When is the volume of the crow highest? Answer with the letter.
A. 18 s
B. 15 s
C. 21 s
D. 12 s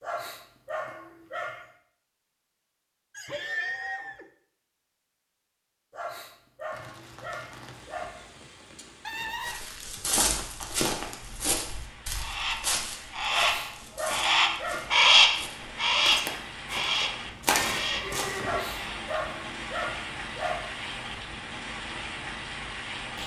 B.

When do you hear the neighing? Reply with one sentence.
The neighing can be heard from 3.1 to 4.2 s, from 9.0 to 10.2 s and from 16.7 to 18.6 s.